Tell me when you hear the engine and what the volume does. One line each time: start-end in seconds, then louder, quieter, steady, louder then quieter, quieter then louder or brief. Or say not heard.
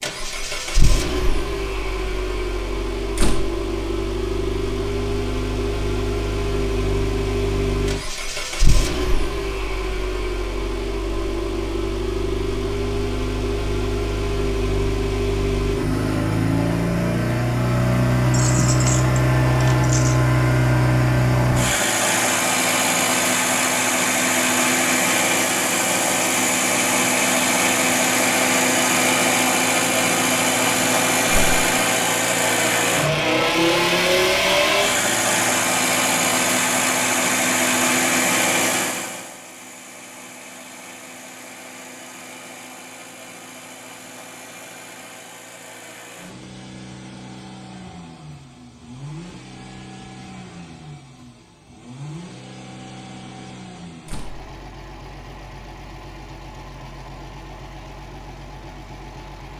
0.0-59.5 louder then quieter.